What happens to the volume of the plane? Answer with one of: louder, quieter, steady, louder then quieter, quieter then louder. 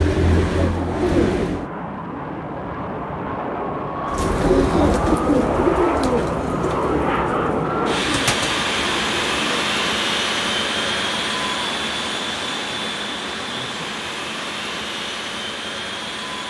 louder then quieter.